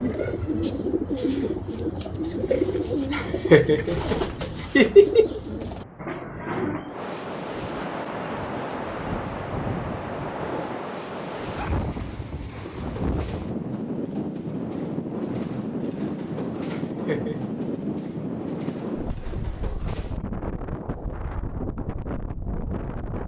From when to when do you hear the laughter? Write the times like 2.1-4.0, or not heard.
3.1-5.4, 16.6-17.6.